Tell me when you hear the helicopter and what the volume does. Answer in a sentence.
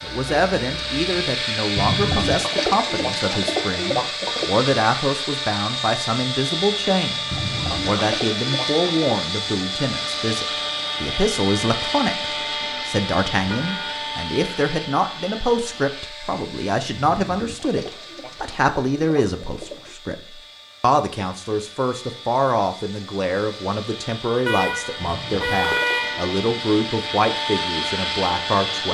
You can hear the helicopter from 0.0 to 28.9 s, getting quieter then louder.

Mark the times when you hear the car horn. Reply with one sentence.
You can hear the car horn from 0.1 to 1.3 s, from 13.3 to 14.0 s and from 24.4 to 26.4 s.